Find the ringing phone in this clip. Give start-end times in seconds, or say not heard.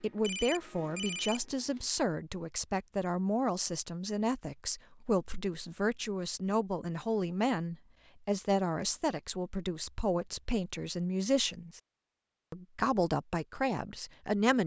0.2-2.0.